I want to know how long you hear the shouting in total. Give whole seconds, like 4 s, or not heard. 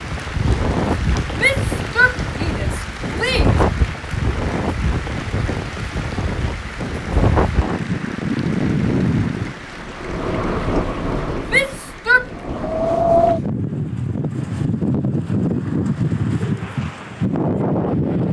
3 s.